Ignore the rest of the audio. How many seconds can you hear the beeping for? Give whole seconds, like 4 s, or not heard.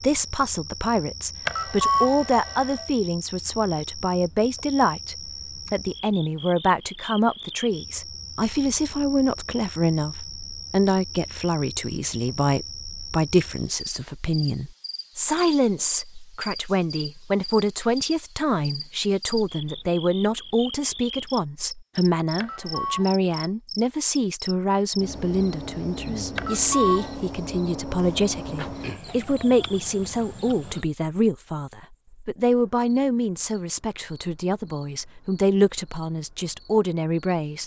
3 s.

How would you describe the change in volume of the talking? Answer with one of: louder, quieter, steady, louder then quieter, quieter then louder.
steady.